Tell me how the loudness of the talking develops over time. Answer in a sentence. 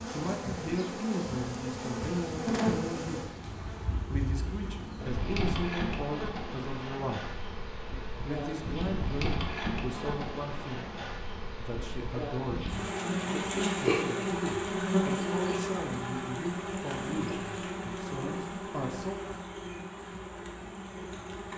The loudness of the talking stays about the same.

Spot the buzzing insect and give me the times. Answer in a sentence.
You can hear the buzzing insect from 0.0 to 21.5 s.